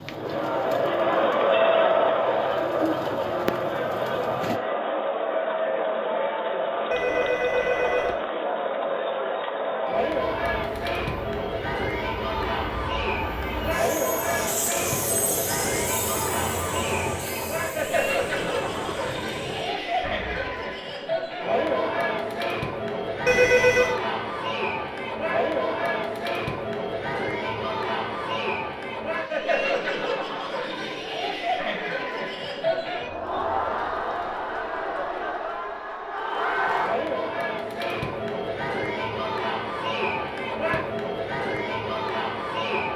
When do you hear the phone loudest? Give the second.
24 s.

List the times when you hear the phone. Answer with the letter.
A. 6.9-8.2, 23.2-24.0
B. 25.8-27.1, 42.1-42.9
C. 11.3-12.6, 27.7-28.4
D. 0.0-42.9
A.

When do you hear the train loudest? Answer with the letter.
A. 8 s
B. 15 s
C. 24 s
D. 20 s
B.